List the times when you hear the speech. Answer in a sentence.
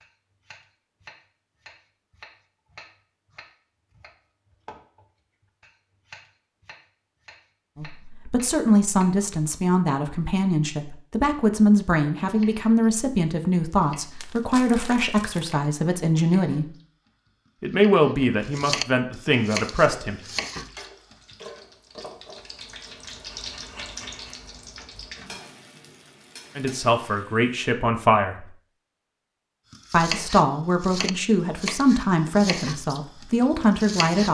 You can hear the speech from 7.8 to 16.7 s, from 17.6 to 20.2 s, from 26.6 to 28.5 s and from 29.9 to 34.2 s.